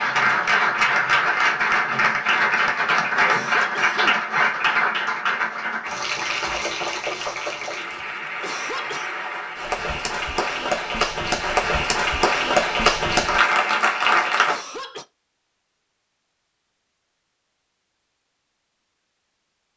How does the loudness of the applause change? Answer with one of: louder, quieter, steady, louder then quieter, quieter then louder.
quieter then louder.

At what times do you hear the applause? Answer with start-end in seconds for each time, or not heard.
0.0-14.6.